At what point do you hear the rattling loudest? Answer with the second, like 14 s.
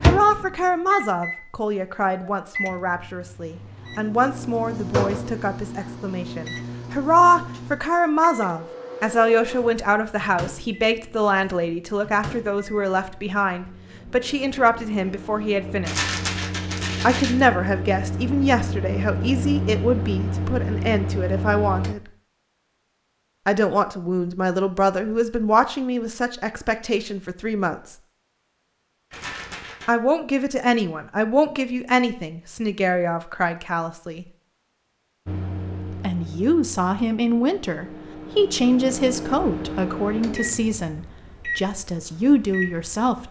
16 s.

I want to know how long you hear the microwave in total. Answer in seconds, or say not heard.
30 s.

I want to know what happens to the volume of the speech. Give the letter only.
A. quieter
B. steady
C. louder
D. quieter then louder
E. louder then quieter
B.